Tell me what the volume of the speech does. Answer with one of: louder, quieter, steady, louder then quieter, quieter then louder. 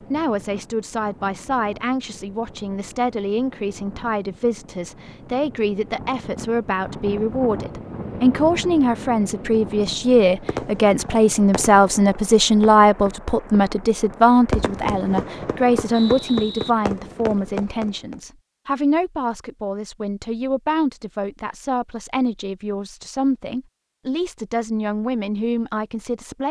louder then quieter.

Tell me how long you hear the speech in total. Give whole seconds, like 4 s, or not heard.
26 s.